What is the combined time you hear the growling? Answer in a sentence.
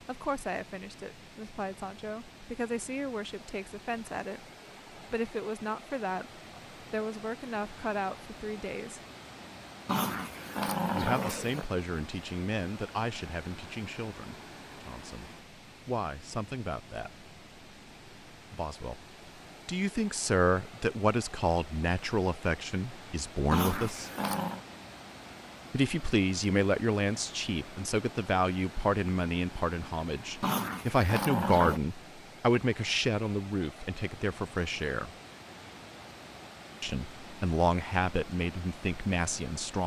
You can hear the growling for 4 seconds altogether.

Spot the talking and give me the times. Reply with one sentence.
The talking can be heard from 0.1 to 9.0 s, from 10.9 to 17.2 s, from 18.5 to 19.0 s, from 19.6 to 24.1 s, from 25.7 to 35.1 s and from 36.8 to 39.8 s.